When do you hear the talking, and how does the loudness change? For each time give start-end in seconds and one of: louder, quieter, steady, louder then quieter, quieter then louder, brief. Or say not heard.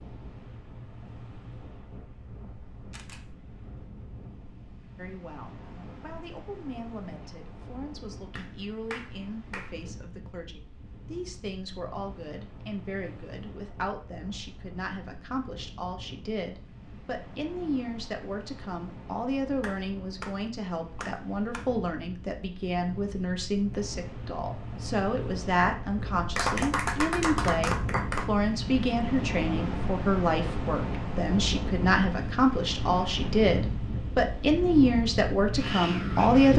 5.0-36.5 louder.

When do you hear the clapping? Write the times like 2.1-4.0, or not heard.
8.3-9.8, 19.6-21.6, 26.4-28.2.